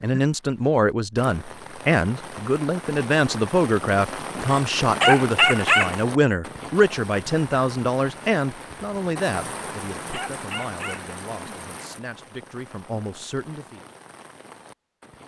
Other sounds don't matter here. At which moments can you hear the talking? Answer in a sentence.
You can hear the talking from 0.0 to 13.8 s.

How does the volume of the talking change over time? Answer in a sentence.
The loudness of the talking goes down.